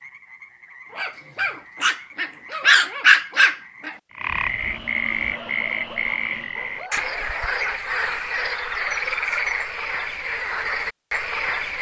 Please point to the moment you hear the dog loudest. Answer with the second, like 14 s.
3 s.